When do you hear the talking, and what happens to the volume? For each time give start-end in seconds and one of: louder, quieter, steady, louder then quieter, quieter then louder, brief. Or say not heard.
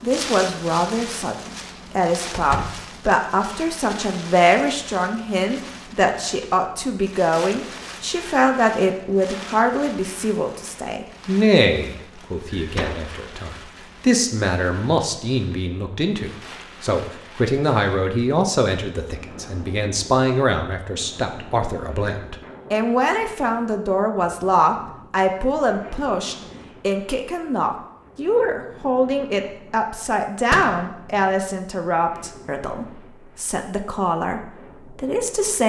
0.0-35.6 steady.